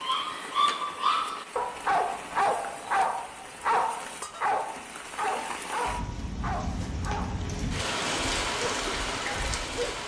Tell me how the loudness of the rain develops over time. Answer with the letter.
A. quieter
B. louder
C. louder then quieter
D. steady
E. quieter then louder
B.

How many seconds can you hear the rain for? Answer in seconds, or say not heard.
10 s.